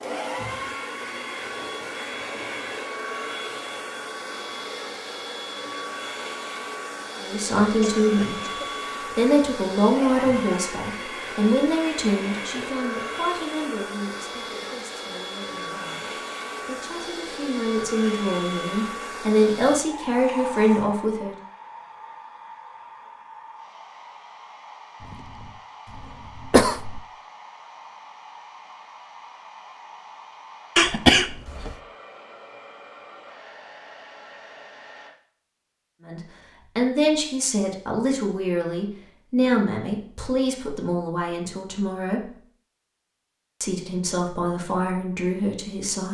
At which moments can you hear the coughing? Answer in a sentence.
You can hear the coughing from 7.8 to 8.7 s, from 25.1 to 27.0 s and from 30.8 to 31.8 s.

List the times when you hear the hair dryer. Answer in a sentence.
The hair dryer can be heard from 0.0 to 35.1 s.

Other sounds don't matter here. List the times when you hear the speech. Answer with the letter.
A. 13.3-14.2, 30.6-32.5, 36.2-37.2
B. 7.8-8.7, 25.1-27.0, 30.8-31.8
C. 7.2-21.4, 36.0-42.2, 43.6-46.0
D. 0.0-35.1
C.